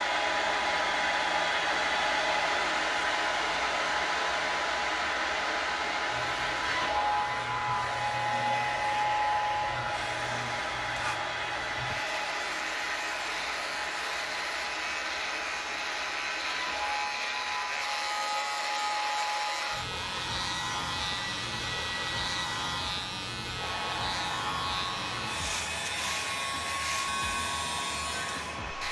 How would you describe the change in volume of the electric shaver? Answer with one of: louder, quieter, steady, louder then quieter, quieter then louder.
louder.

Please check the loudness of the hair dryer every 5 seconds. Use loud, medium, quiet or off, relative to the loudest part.
loud, loud, medium, medium, medium, medium.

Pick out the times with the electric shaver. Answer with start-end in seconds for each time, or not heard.
6.0-28.8.